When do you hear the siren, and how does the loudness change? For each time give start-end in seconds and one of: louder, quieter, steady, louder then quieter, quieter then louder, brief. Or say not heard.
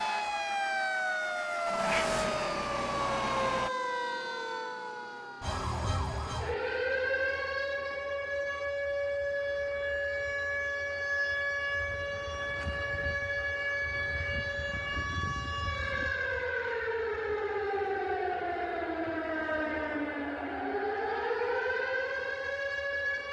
0.0-23.2 steady.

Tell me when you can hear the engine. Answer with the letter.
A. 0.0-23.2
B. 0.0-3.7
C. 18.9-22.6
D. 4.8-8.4
B.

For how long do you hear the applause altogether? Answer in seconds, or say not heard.
not heard.